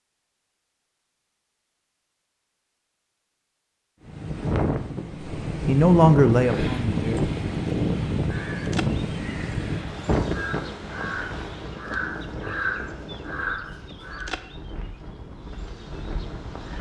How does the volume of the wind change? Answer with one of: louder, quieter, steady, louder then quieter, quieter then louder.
quieter.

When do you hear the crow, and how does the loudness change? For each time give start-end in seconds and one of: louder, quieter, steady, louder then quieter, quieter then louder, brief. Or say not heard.
6.3-14.3 louder.